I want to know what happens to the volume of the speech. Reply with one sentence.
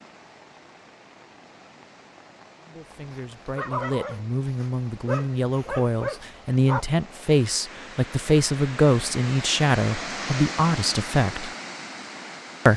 The volume of the speech goes up.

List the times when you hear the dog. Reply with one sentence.
You can hear the dog from 2.9 to 6.8 s.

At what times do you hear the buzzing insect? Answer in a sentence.
The buzzing insect can't be heard in this clip.